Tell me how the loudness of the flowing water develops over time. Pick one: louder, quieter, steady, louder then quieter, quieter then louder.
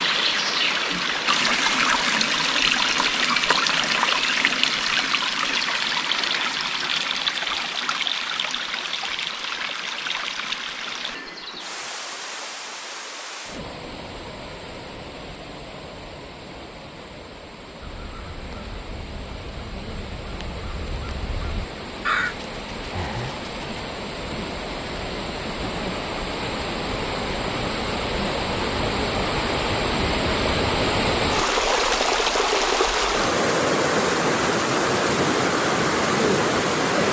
quieter then louder.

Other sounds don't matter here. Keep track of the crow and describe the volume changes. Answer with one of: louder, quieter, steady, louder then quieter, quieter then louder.
louder.